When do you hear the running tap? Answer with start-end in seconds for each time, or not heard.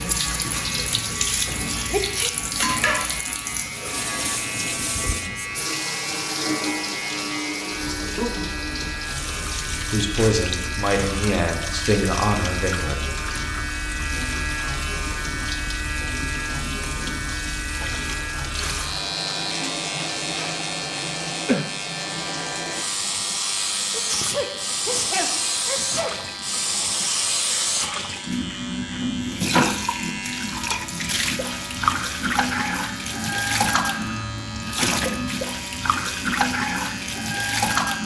0.0-38.0.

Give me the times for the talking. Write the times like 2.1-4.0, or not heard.
9.8-13.1.